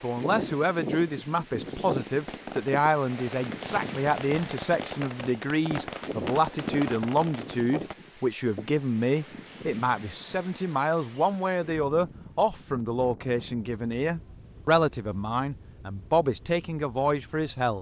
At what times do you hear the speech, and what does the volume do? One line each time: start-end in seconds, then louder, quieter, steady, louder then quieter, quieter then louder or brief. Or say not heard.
0.0-17.7 steady.